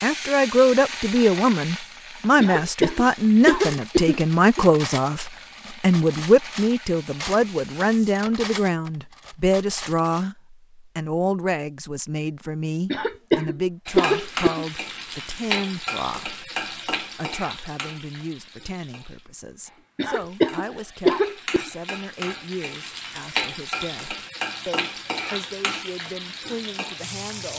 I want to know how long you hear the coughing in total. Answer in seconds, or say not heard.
6 s.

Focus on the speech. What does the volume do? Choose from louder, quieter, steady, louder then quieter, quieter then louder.
quieter.